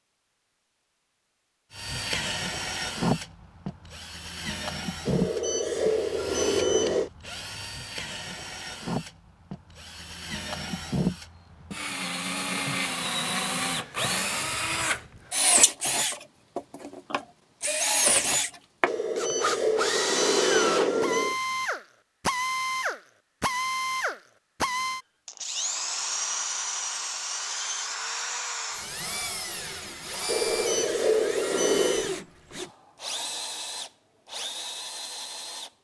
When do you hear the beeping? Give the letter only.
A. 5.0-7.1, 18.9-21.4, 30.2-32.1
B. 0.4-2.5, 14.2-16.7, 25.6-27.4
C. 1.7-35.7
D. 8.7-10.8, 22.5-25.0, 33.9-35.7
A.